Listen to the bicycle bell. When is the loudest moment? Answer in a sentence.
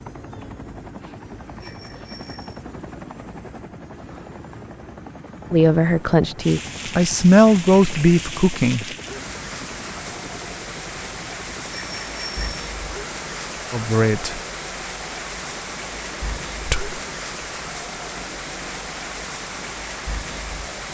The loudest moment of the bicycle bell is at 12 seconds.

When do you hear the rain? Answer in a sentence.
You can hear the rain from 6.4 to 20.8 s.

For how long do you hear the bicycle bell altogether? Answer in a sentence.
The bicycle bell can be heard for 2 seconds in total.